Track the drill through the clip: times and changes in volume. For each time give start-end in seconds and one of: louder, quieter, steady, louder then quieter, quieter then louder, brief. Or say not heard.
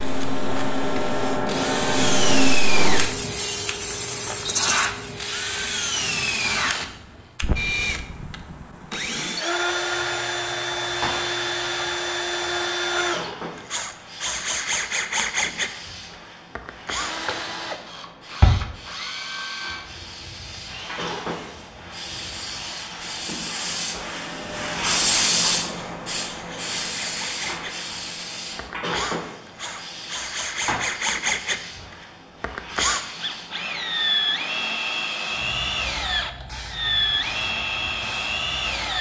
0.0-38.9 quieter then louder.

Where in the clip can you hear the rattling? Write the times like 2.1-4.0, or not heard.
4.5-4.9.